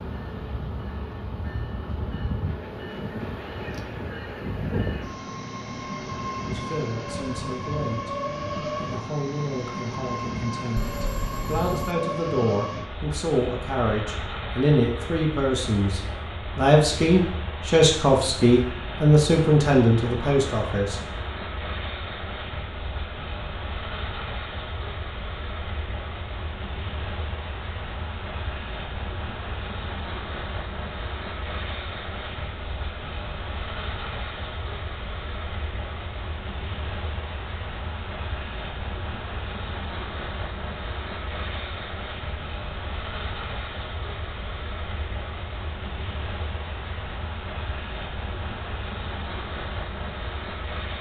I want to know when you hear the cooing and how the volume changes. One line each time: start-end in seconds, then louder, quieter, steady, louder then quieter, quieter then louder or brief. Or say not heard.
not heard.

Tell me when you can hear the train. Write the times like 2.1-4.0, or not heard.
0.0-50.9.